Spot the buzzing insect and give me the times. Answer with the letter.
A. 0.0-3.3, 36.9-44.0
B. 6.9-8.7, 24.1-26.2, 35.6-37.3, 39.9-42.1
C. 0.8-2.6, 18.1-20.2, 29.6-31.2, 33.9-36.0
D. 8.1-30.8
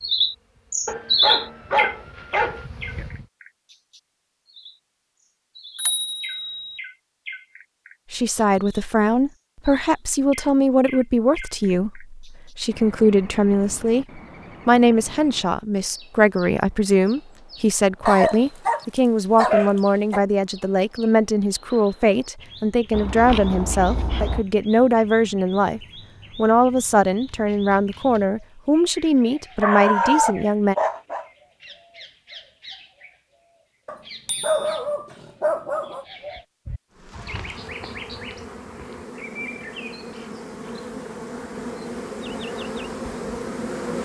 A.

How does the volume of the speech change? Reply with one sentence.
The loudness of the speech stays about the same.